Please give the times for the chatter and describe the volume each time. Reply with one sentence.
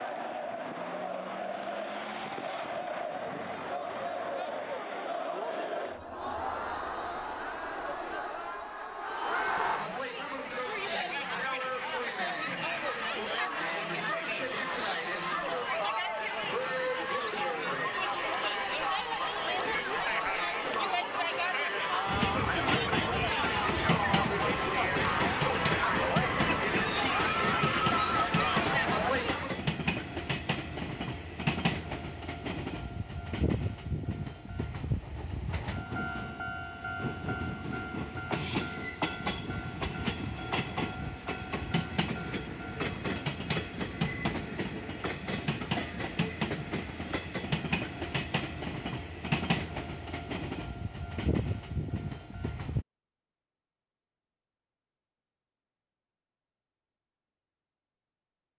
You can hear the chatter from 0.0 to 29.6 s, getting louder.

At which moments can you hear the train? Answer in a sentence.
You can hear the train from 22.1 to 52.9 s.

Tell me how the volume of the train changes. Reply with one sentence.
The loudness of the train stays about the same.